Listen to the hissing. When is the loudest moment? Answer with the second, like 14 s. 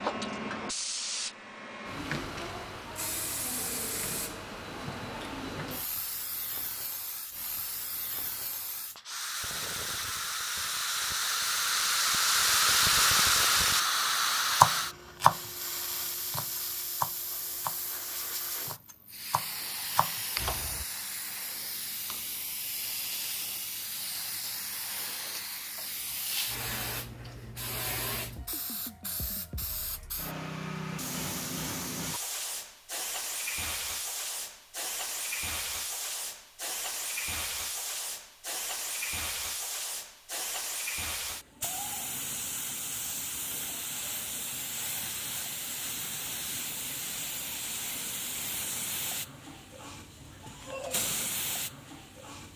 13 s.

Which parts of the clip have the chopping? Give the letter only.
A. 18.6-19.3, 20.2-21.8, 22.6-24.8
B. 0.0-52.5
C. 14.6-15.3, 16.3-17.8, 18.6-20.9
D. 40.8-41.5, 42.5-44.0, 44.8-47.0
C.